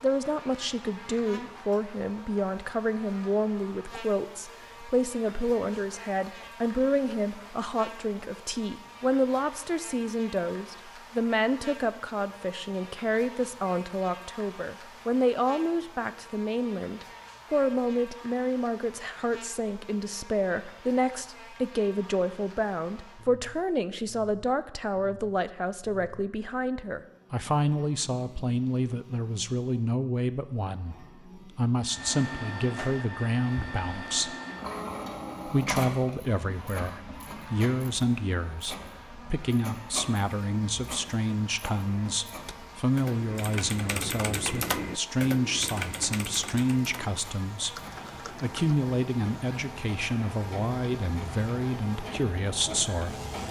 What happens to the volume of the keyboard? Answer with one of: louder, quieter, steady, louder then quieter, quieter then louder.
louder then quieter.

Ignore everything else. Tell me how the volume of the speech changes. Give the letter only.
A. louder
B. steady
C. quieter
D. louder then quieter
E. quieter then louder
B.